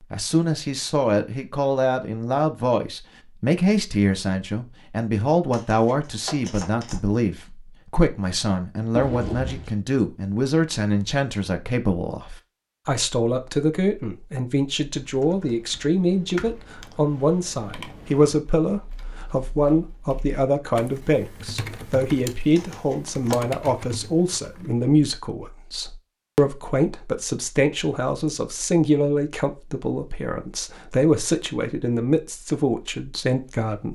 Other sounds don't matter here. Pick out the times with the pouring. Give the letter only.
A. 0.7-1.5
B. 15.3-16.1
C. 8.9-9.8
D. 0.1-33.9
C.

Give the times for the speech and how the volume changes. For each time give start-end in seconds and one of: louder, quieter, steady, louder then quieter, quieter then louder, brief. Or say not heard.
0.1-33.9 steady.